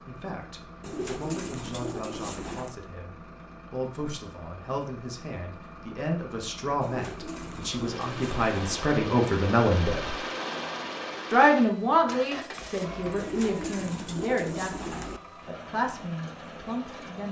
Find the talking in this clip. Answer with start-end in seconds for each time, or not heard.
0.0-10.2, 11.3-17.2.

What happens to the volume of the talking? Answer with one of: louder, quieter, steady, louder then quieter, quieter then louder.
louder then quieter.